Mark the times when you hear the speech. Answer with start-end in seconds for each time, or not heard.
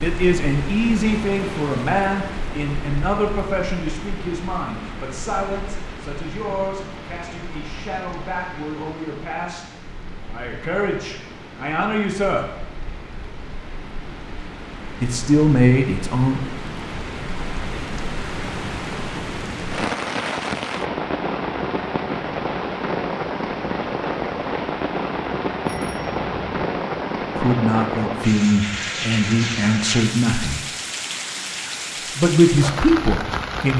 0.0-12.4, 15.0-16.4, 27.4-30.6, 32.1-33.7.